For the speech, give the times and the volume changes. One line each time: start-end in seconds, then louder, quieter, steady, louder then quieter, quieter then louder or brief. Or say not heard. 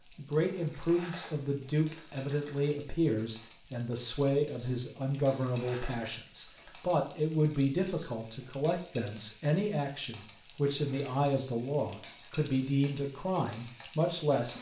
0.1-14.5 steady.